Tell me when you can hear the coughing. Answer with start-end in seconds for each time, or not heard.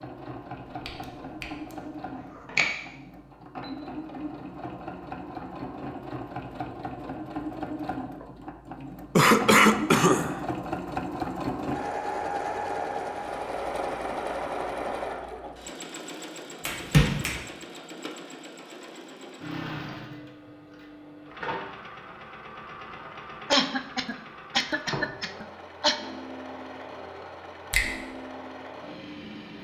9.2-10.4, 23.5-25.9.